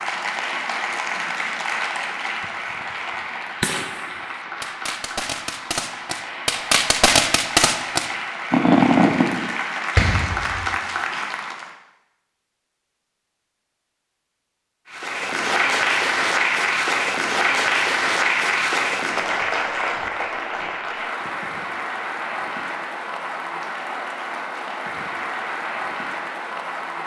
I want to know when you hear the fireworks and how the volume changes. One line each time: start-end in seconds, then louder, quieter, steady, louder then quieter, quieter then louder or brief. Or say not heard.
2.4-10.8 louder.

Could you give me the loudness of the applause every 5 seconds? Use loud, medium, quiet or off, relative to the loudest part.
medium, medium, medium, loud, medium, medium.